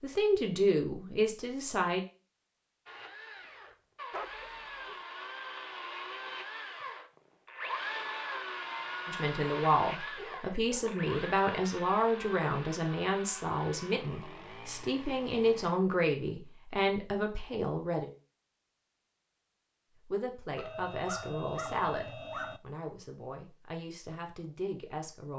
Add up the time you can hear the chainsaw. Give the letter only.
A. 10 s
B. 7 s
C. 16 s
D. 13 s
D.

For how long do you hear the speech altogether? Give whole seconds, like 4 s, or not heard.
16 s.